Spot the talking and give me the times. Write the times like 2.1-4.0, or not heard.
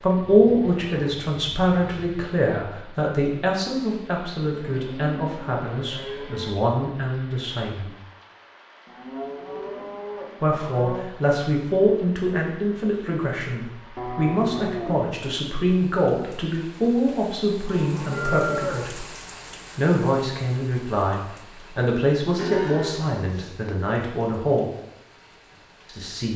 0.0-8.0, 10.4-19.1, 19.8-24.7, 25.9-26.3.